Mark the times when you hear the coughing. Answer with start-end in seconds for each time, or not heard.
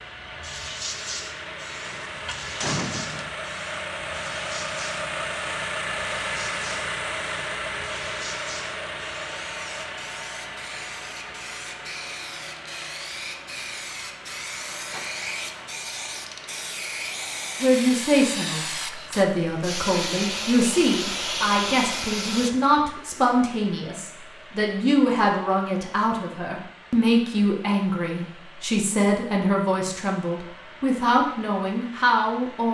not heard.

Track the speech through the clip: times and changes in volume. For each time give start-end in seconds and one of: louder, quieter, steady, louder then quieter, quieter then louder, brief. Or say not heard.
17.6-32.6 steady.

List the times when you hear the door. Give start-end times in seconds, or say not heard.
1.8-3.4.